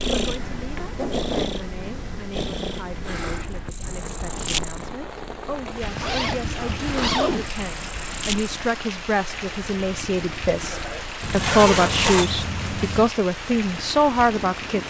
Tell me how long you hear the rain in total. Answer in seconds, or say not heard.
15 s.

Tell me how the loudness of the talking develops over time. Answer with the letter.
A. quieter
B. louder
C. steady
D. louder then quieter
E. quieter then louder
B.